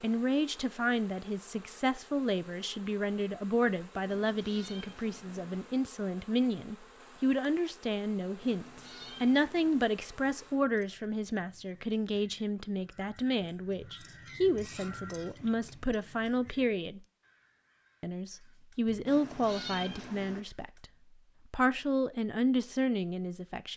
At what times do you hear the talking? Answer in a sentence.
The talking can be heard from 0.0 to 17.0 s, from 18.0 to 20.9 s and from 21.5 to 23.7 s.